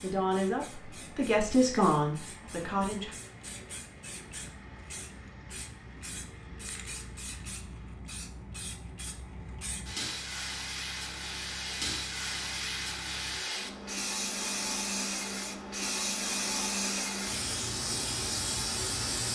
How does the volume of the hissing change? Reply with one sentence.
The volume of the hissing goes up.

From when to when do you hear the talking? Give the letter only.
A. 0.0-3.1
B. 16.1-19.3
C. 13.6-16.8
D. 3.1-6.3
A.